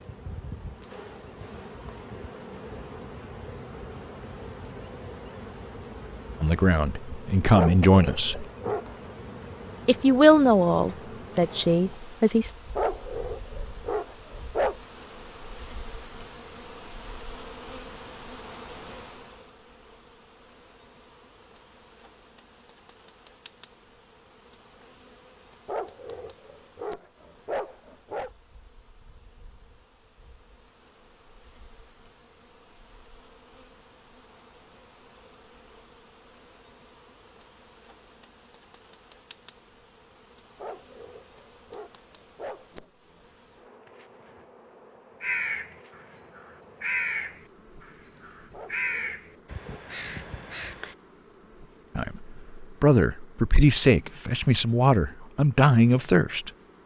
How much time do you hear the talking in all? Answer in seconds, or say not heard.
9 s.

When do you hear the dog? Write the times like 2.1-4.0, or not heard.
7.5-9.1, 12.8-14.8, 25.6-28.3, 40.5-42.9, 48.5-49.9.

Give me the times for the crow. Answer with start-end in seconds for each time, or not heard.
45.2-51.0.